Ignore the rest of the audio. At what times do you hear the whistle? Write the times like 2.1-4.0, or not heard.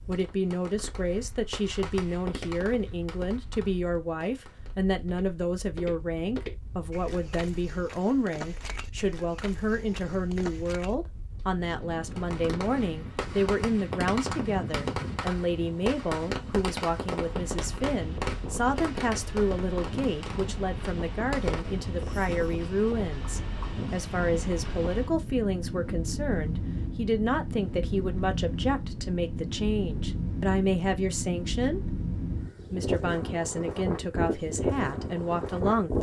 not heard.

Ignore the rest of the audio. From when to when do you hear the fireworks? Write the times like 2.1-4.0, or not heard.
0.0-5.0, 12.2-22.6.